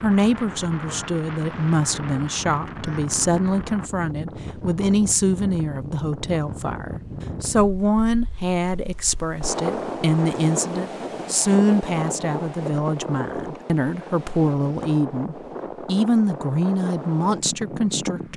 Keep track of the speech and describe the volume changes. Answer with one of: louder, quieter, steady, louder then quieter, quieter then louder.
steady.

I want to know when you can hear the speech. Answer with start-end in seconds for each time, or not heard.
0.0-18.3.